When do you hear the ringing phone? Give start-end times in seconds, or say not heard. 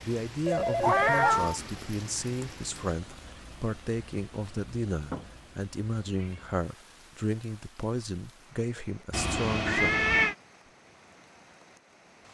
0.5-1.4.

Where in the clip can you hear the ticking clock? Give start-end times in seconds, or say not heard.
not heard.